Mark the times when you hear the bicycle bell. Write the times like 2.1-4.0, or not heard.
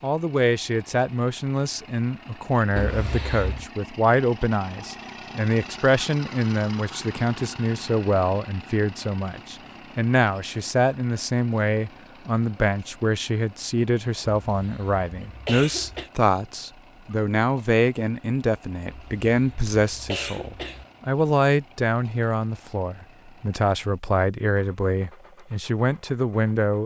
not heard.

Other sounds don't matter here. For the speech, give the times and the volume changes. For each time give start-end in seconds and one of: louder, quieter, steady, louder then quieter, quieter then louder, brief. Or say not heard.
0.0-26.8 steady.